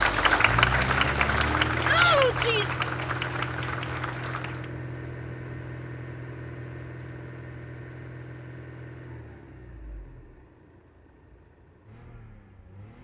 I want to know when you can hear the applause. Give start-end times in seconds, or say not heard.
0.0-4.7.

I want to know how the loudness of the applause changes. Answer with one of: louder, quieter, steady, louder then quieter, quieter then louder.
quieter.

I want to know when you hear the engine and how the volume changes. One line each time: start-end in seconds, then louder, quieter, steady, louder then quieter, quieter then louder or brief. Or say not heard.
0.0-12.9 quieter.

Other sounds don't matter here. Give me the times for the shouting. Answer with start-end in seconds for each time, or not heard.
1.9-2.8.